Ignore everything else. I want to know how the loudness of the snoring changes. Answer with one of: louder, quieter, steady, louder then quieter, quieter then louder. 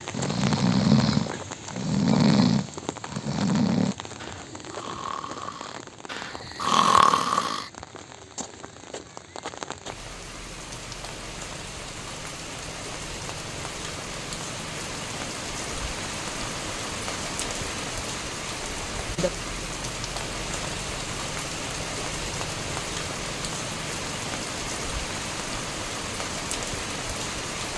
quieter then louder.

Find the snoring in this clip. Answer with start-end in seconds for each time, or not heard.
0.1-7.7.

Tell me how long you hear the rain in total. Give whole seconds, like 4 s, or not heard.
28 s.